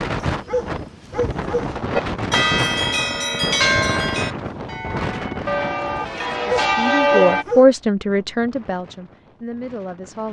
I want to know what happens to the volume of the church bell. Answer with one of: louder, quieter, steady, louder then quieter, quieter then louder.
quieter then louder.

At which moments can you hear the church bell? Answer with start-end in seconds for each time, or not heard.
1.9-7.5.